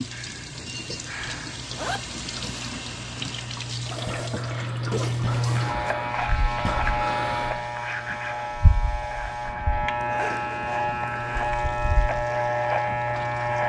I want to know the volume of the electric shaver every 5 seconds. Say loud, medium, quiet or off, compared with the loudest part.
medium, loud, loud.